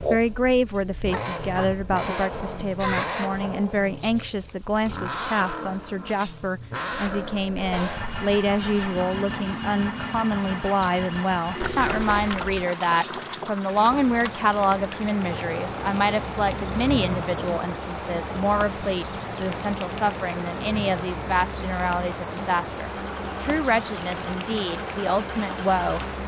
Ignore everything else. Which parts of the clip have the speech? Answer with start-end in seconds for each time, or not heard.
0.1-26.0.